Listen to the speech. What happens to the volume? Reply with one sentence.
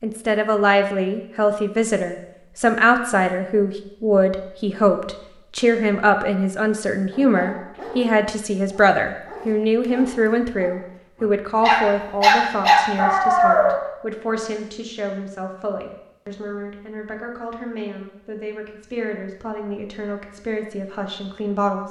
The volume of the speech goes down.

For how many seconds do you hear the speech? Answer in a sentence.
The speech can be heard for 22 seconds in total.